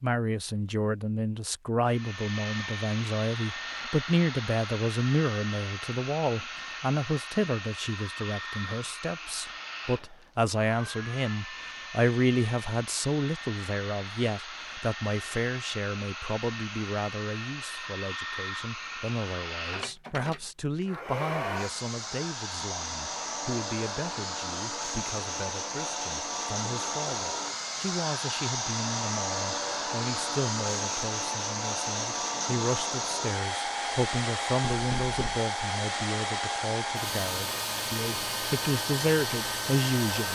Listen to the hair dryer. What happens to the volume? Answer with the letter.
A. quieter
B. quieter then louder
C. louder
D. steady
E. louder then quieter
C.